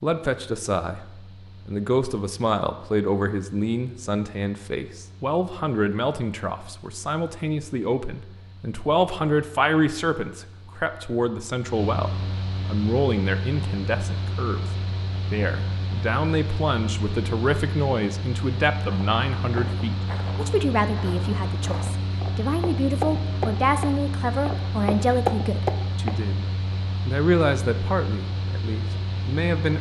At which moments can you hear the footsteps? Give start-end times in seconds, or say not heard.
18.9-26.1.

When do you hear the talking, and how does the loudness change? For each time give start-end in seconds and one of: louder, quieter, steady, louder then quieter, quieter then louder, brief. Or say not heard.
0.0-1.1 brief
1.6-14.6 steady
15.3-26.4 steady
27.1-29.7 brief.